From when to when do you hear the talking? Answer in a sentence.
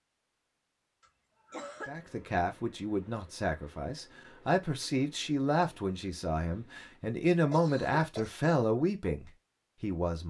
The talking can be heard from 1.9 to 10.2 s.